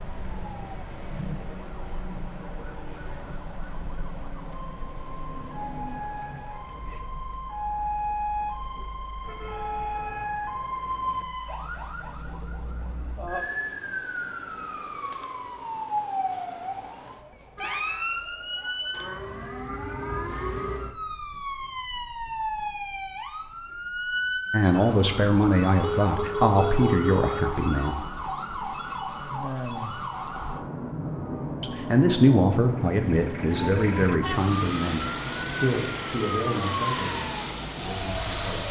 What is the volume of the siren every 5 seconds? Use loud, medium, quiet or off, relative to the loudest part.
medium, loud, loud, loud, loud, loud, loud, loud.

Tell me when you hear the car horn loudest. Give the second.
27 s.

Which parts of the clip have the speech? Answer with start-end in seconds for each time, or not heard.
24.5-27.9, 31.6-38.6.